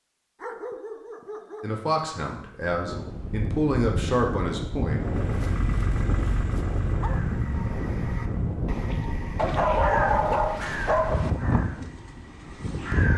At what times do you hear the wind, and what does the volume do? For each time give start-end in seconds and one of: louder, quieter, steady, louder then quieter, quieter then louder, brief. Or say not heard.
2.6-13.1 steady.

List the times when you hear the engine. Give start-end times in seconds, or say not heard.
4.8-8.7.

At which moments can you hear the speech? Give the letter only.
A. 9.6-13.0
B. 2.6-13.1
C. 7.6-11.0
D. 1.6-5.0
D.